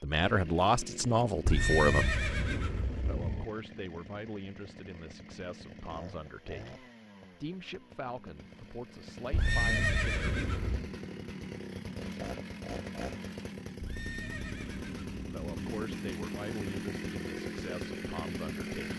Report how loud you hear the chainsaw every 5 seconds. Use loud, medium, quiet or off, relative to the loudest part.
medium, medium, loud, loud.